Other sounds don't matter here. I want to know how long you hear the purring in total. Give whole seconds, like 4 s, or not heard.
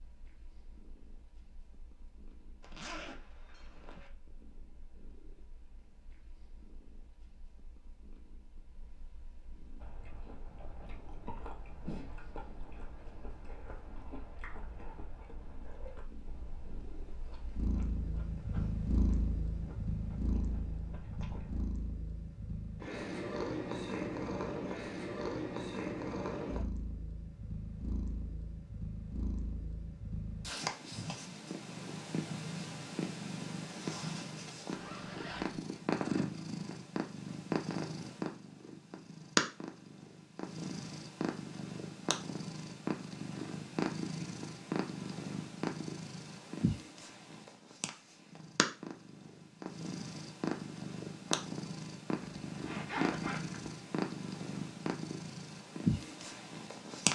57 s.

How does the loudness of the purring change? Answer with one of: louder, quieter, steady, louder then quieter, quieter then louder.
louder.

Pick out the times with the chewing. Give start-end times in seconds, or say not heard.
9.8-21.7.